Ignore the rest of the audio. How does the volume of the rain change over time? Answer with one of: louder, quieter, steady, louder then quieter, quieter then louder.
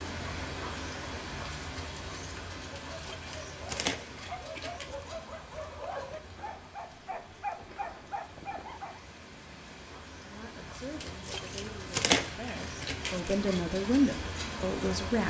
quieter then louder.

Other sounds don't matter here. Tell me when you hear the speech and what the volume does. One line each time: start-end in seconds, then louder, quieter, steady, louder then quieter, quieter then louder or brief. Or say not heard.
10.2-15.2 louder.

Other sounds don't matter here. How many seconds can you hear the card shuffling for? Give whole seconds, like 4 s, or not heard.
5 s.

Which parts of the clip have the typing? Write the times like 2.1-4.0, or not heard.
not heard.